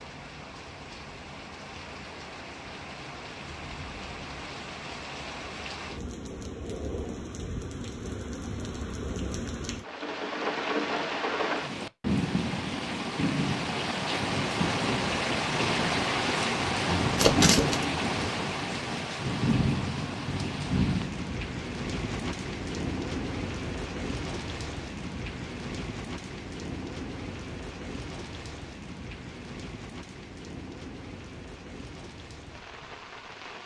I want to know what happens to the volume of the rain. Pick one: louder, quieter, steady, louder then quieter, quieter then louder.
louder then quieter.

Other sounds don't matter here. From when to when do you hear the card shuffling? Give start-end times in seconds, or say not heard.
17.1-17.8.